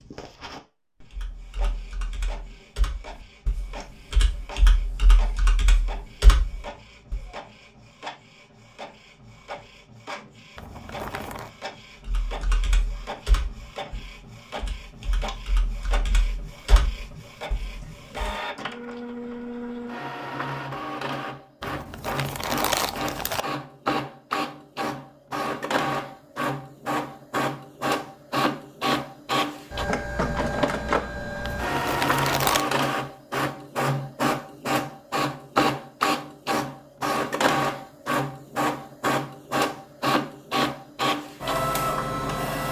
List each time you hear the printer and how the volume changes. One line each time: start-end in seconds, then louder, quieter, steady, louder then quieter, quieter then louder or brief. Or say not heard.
0.0-42.6 louder.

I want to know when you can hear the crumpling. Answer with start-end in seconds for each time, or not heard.
10.6-11.5, 21.6-23.4, 31.4-32.6.